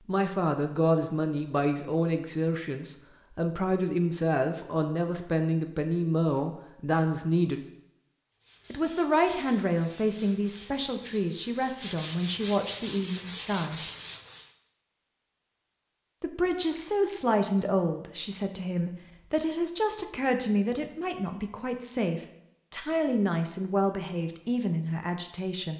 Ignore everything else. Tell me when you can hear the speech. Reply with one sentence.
You can hear the speech from 0.0 to 7.7 s, from 8.7 to 13.8 s and from 16.2 to 25.7 s.